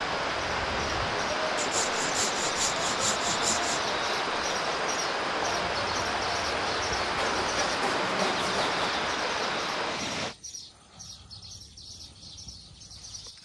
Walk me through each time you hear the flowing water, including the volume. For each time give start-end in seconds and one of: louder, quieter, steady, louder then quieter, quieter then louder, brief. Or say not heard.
0.0-10.3 steady.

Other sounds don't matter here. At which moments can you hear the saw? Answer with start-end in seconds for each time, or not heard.
1.6-3.8, 7.0-9.0.